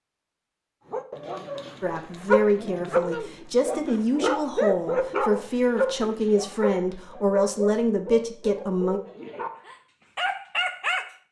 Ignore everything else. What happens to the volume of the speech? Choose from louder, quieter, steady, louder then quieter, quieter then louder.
steady.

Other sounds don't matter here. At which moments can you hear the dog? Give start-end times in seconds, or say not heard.
0.9-11.1.